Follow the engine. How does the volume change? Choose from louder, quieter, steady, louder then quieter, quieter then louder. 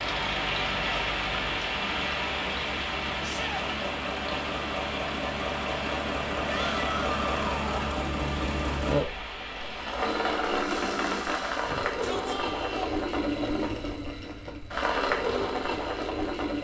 louder.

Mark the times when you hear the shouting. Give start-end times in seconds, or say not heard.
3.2-3.6, 6.5-8.1, 11.7-12.9.